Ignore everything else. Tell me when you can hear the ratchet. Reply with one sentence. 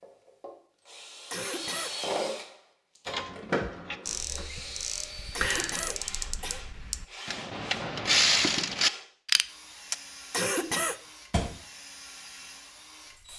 The ratchet can be heard from 3.0 to 9.9 s.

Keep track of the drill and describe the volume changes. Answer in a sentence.
The volume of the drill goes down.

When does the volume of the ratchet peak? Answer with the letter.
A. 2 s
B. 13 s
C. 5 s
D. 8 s
D.